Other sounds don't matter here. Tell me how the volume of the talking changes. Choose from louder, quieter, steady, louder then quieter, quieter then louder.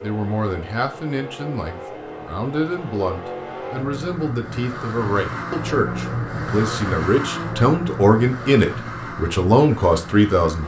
louder.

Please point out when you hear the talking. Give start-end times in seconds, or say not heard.
0.0-10.6.